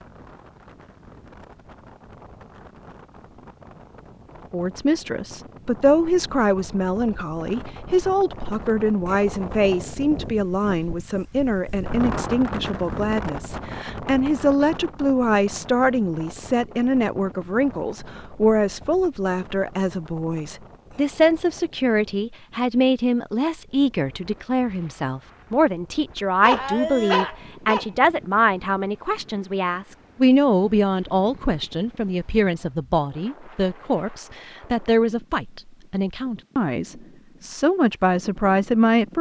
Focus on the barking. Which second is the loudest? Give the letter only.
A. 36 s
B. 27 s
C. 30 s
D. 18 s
B.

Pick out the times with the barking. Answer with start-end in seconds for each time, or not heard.
26.4-27.9.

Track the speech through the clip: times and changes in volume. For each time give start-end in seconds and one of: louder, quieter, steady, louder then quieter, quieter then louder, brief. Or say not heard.
4.5-39.1 steady.